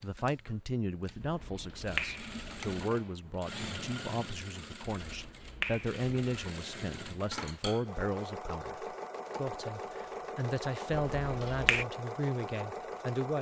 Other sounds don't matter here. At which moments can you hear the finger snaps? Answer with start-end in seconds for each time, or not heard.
1.2-2.9, 5.0-6.5, 10.9-11.8.